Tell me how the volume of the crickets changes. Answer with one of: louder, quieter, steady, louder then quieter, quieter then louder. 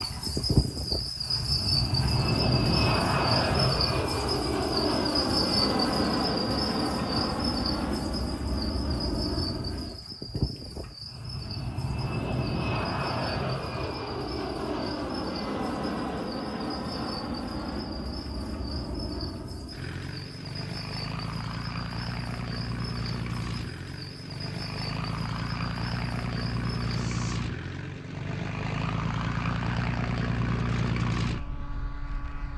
quieter.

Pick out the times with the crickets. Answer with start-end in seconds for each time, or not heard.
0.0-27.4.